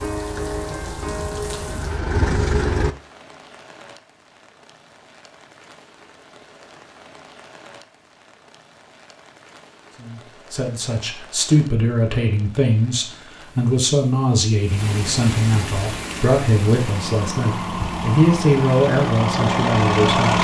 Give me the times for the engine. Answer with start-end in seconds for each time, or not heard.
0.0-3.0, 15.9-20.3.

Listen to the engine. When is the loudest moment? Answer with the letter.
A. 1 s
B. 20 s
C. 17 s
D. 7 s
B.